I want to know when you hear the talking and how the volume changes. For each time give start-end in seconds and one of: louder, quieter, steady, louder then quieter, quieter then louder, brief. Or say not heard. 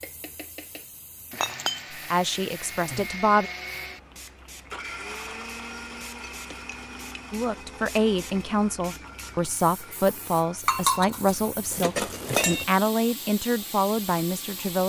2.1-3.5 brief
7.3-14.8 steady.